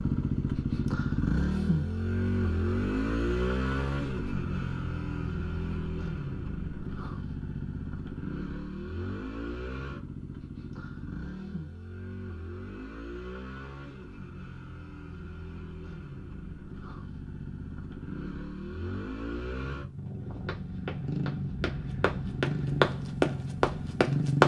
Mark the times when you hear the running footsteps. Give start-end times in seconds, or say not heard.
20.4-24.4.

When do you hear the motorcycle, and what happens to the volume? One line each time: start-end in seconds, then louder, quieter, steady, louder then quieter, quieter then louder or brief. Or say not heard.
0.0-24.4 quieter then louder.